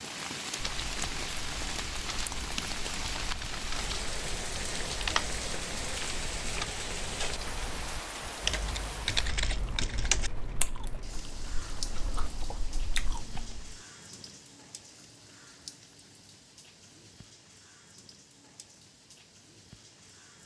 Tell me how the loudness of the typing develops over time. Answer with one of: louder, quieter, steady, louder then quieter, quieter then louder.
louder.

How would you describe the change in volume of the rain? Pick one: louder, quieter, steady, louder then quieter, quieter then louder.
quieter.